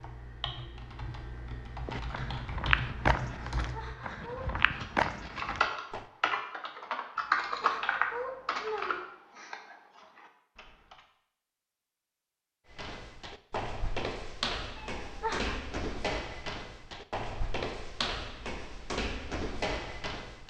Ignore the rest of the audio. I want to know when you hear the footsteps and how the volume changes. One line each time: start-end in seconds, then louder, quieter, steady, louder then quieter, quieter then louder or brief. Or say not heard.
1.9-6.0 quieter then louder
12.7-20.4 steady.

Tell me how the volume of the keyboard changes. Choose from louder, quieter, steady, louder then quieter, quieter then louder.
louder then quieter.